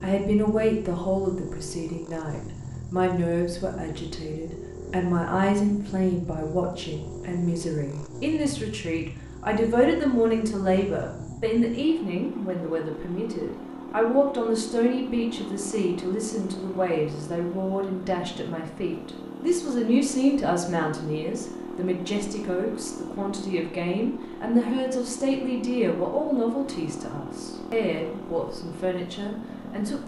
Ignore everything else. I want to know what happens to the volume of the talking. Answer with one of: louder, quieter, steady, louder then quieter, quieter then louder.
steady.